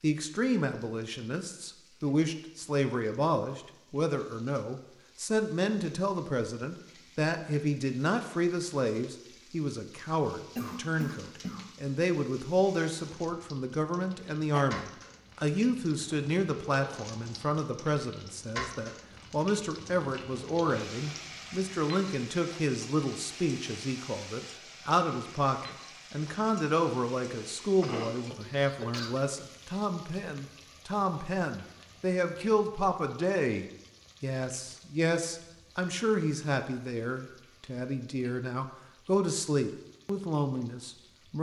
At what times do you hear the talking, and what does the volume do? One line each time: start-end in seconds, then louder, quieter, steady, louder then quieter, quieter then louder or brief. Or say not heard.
0.0-41.3 steady.